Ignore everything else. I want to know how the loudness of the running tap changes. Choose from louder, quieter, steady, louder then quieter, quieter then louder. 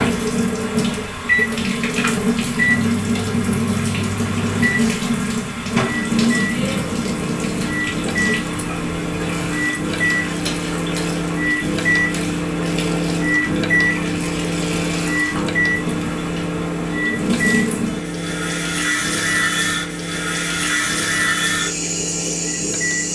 quieter then louder.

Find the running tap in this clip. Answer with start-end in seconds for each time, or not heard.
0.0-23.1.